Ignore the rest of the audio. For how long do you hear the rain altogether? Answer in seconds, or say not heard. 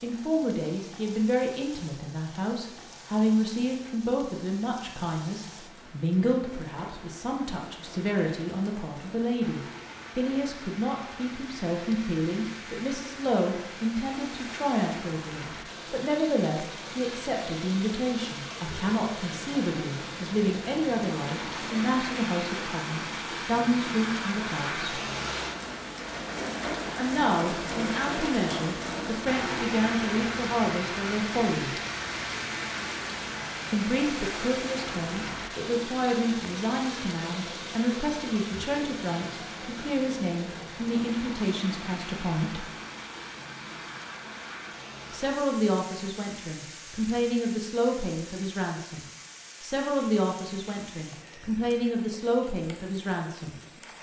54 s.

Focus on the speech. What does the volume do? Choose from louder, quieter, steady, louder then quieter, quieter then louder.
steady.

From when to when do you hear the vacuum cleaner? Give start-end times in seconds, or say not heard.
not heard.